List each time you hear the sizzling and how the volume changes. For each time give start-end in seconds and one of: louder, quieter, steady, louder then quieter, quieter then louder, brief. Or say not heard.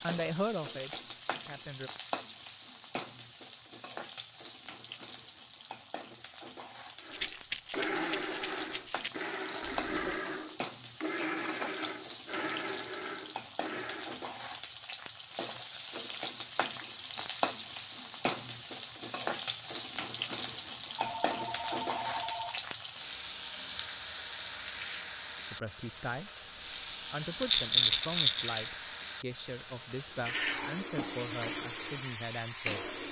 0.0-33.0 louder.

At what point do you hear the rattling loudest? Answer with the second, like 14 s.
28 s.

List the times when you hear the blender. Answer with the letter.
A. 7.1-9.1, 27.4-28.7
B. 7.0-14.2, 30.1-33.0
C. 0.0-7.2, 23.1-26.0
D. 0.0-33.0
B.